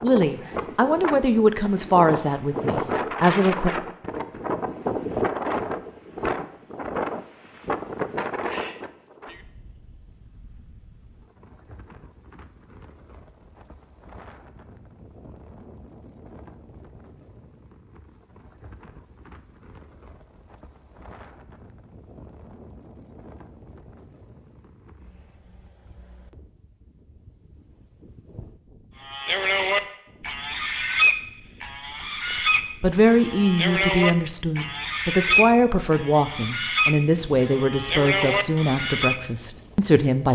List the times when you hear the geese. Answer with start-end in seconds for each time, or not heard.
29.0-39.2.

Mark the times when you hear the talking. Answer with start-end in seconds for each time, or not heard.
0.0-3.7, 32.2-40.2.